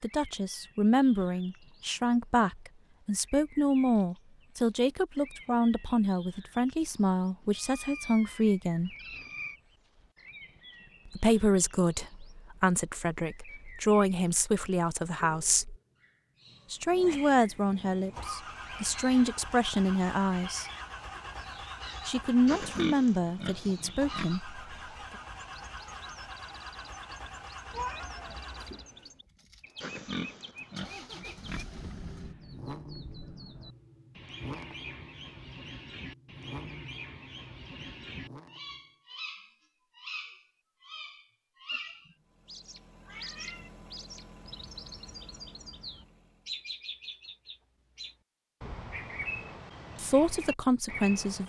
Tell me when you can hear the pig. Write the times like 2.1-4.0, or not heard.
22.4-24.2, 29.8-31.6.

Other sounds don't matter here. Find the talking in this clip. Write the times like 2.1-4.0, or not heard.
0.0-8.9, 11.1-15.8, 16.7-20.6, 22.1-24.6, 50.0-51.4.